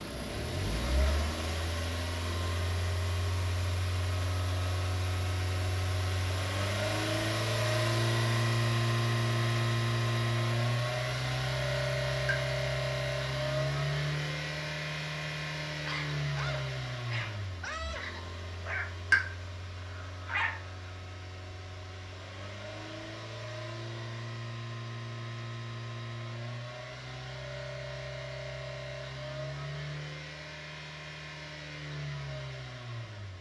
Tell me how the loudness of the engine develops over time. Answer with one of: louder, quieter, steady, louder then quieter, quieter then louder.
louder then quieter.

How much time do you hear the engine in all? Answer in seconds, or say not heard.
33 s.